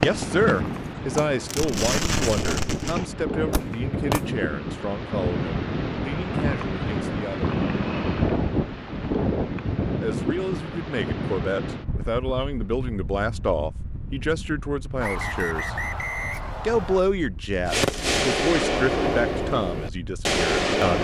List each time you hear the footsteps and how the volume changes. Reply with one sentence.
You can't hear the footsteps here.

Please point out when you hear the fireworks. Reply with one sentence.
The fireworks can be heard from 0.0 to 4.2 s and from 17.6 to 20.9 s.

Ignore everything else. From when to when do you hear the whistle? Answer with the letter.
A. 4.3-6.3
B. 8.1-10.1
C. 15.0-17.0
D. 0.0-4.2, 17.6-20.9
C.